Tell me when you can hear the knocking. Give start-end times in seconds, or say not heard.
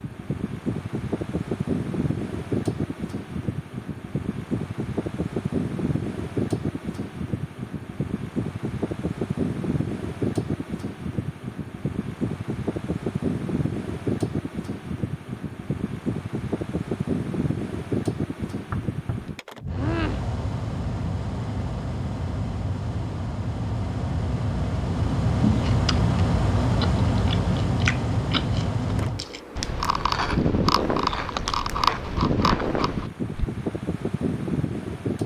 18.5-20.2.